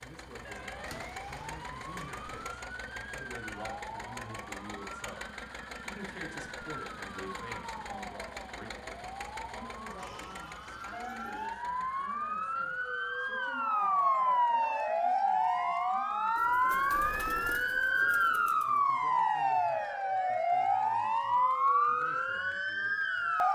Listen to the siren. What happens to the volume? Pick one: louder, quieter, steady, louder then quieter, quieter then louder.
louder.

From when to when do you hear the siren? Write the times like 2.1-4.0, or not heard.
0.5-23.4.